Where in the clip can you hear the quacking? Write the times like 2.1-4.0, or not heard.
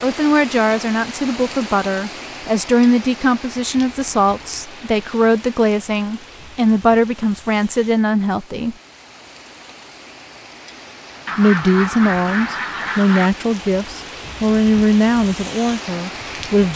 11.2-13.3.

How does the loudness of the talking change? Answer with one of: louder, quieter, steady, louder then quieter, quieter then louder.
steady.